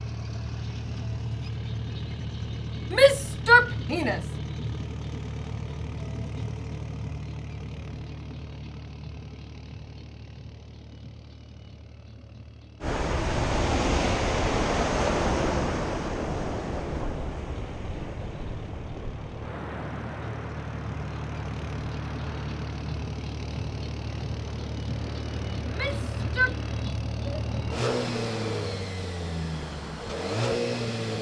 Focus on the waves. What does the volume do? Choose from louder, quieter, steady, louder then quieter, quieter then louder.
quieter.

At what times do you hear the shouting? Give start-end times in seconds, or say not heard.
2.9-4.2, 25.6-26.6.